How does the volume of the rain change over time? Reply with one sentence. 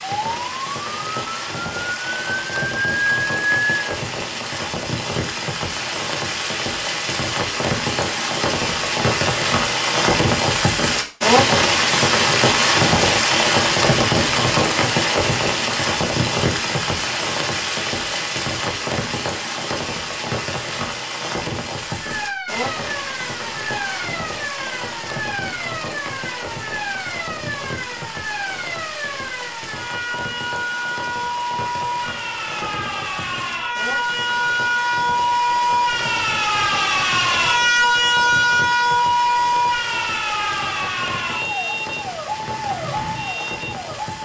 The volume of the rain goes up, then down.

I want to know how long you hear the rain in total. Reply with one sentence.
You can hear the rain for 44 seconds altogether.